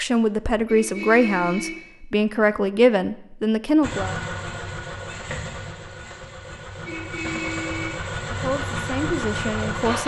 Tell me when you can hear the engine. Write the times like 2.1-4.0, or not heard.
3.8-10.0.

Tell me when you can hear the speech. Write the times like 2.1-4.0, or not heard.
0.0-4.2, 8.3-10.0.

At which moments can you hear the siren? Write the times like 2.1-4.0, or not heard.
not heard.